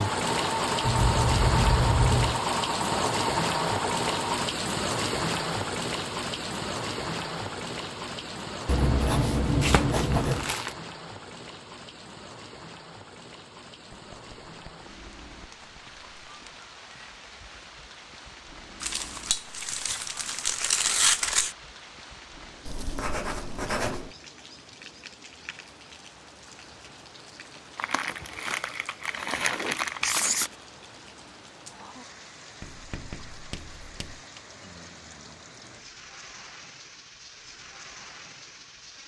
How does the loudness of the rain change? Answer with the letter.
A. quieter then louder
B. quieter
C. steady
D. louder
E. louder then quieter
B.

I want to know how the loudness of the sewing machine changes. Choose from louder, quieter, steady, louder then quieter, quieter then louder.
steady.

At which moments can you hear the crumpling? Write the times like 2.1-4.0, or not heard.
9.6-10.8, 18.8-21.6, 27.8-30.5.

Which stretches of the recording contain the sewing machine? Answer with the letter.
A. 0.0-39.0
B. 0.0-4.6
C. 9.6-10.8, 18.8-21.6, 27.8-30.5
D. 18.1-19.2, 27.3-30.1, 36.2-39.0
B.